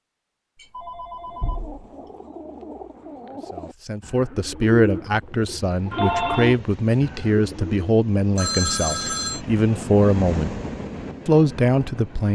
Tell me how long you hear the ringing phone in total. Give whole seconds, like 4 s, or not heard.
3 s.